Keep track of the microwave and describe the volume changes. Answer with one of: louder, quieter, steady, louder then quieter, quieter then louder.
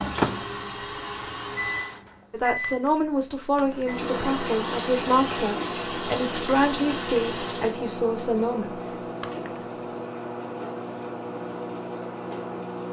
steady.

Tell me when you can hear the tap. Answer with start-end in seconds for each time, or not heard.
0.0-2.0, 3.9-7.8.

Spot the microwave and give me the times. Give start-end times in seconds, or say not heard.
0.0-12.8.